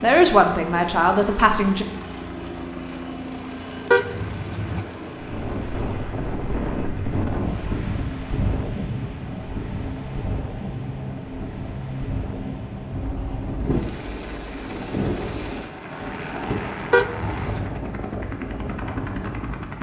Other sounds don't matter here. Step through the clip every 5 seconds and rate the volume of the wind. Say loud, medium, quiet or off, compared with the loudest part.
off, loud, loud, loud.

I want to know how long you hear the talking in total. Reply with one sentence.
The talking can be heard for 2 seconds in total.